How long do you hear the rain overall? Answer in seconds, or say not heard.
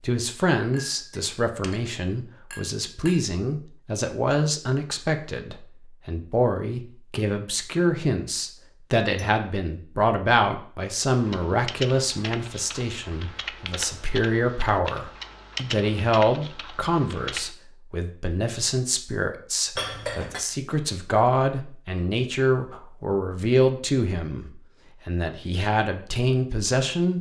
not heard.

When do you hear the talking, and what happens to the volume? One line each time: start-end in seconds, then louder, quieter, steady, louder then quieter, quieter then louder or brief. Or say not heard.
0.0-27.1 steady.